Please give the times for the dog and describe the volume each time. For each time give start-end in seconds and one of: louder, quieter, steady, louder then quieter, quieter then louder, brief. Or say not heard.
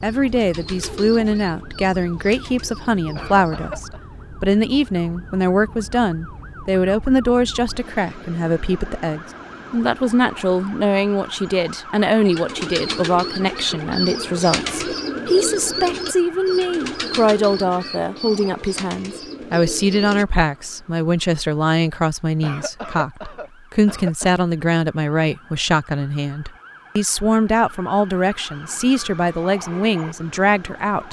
not heard.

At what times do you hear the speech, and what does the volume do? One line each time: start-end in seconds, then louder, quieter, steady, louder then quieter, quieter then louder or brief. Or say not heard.
0.0-31.0 steady.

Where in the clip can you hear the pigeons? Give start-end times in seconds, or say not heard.
0.0-3.6, 12.3-20.2.